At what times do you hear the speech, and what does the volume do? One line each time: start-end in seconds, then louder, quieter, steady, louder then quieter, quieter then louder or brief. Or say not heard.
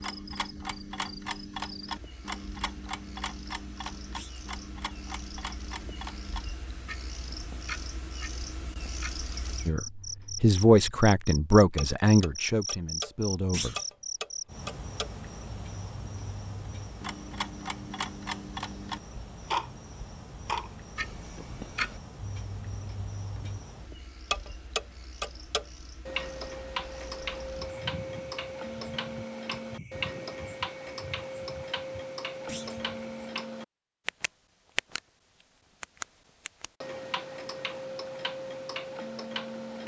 9.7-13.8 quieter.